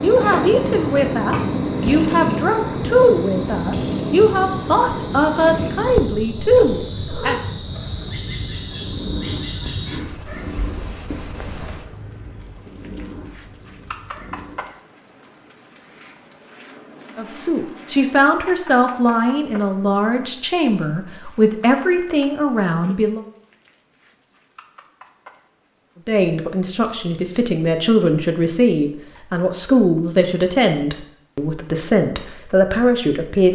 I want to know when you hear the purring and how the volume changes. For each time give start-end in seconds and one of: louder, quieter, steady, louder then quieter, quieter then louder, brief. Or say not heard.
0.0-14.7 quieter.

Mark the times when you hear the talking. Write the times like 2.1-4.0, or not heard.
0.0-7.4, 17.1-23.2, 26.1-33.4.